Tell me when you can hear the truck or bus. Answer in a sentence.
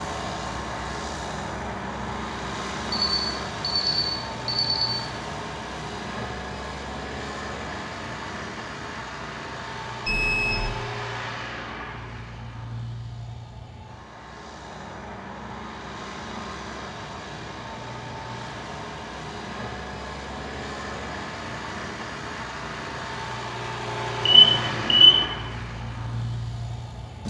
The truck or bus can be heard from 0.0 to 27.2 s.